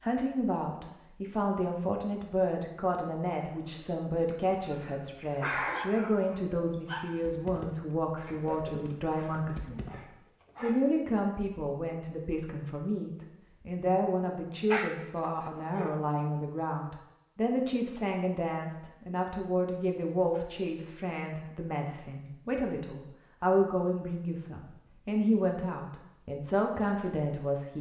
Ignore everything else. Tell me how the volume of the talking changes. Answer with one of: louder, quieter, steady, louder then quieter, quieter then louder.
steady.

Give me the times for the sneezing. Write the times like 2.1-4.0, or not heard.
4.3-5.8.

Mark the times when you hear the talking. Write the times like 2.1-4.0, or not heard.
0.0-27.7.